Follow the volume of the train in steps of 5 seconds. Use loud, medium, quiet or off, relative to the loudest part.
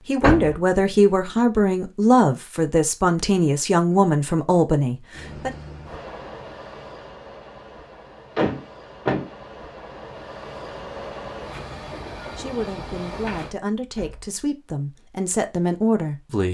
off, medium, loud, off.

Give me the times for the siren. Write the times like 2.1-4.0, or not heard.
not heard.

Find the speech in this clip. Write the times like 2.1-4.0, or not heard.
0.1-5.5, 12.3-16.4.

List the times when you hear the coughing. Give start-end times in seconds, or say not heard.
not heard.